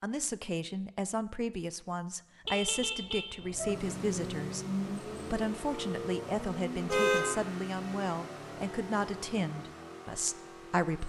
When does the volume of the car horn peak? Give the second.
7 s.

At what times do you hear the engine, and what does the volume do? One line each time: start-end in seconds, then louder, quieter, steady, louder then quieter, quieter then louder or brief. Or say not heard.
3.6-11.0 quieter.